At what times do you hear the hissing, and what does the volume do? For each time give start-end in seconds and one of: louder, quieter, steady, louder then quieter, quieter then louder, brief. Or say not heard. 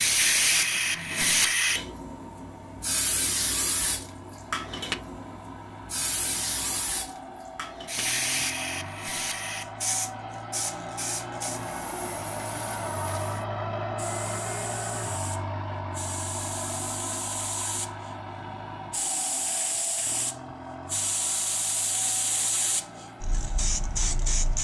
0.0-24.5 quieter then louder.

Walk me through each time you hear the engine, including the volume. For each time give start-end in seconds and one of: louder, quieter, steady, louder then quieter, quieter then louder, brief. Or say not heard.
0.0-24.5 louder then quieter.